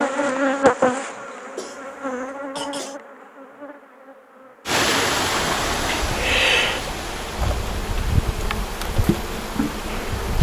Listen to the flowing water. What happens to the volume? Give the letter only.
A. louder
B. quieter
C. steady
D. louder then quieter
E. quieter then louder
B.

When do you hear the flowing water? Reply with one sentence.
You can hear the flowing water from 4.7 to 10.3 s.